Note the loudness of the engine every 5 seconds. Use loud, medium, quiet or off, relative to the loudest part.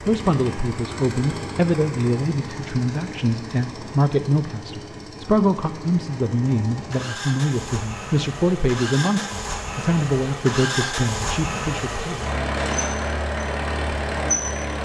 medium, medium, loud.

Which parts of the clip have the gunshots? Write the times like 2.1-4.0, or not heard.
12.6-13.0.